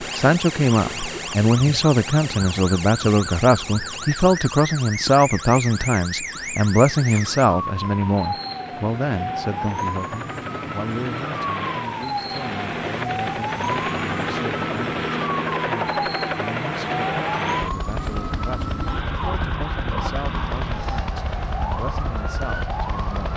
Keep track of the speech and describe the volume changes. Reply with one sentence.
The volume of the speech goes down.